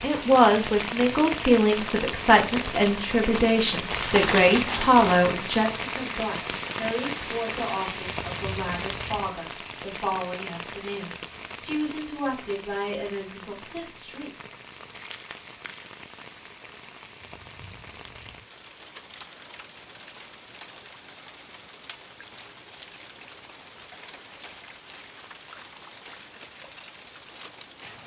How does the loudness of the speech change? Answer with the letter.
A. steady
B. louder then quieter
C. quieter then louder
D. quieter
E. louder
D.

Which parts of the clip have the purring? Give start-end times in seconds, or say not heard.
not heard.